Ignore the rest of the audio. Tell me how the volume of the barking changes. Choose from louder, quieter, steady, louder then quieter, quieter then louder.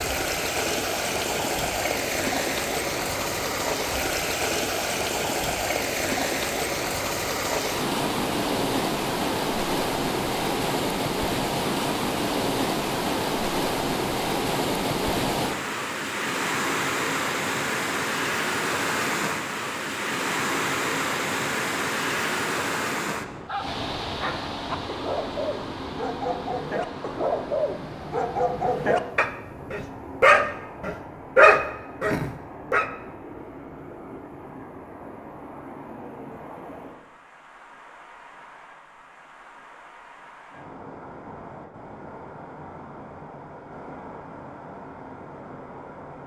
louder.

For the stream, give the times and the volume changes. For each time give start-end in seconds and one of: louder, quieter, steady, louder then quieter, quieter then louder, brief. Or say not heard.
0.0-46.2 quieter.